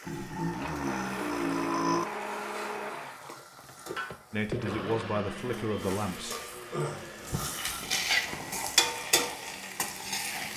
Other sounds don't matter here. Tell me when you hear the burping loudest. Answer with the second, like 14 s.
2 s.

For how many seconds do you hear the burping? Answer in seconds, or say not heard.
3 s.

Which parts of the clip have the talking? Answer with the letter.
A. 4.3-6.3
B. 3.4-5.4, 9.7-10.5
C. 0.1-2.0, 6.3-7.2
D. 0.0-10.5
A.